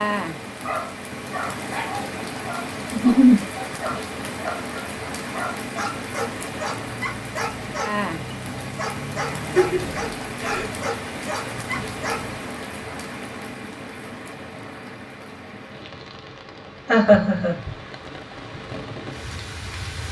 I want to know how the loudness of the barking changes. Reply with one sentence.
The loudness of the barking stays about the same.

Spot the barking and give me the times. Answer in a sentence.
You can hear the barking from 0.6 to 12.4 s.